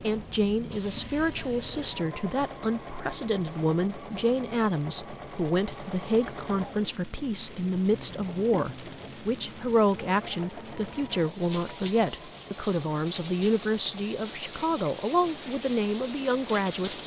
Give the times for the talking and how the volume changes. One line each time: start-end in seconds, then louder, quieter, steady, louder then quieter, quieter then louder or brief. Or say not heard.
0.0-17.0 steady.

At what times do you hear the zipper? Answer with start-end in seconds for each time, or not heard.
not heard.